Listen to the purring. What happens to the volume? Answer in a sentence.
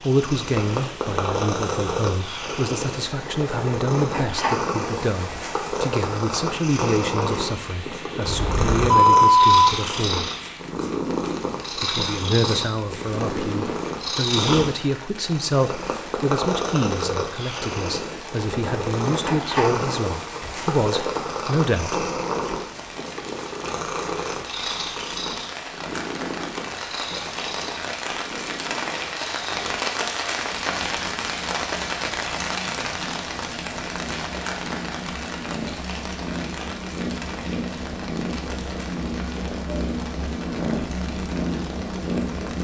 The loudness of the purring goes down, then up.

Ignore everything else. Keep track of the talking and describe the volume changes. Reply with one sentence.
The volume of the talking stays about the same.